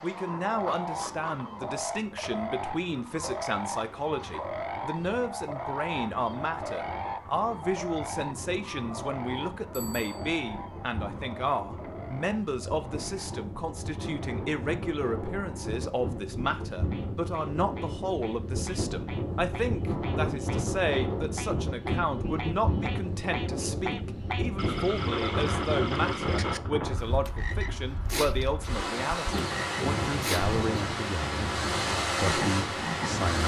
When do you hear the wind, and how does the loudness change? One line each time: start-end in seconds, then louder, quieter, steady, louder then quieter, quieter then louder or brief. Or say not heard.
0.0-33.4 louder.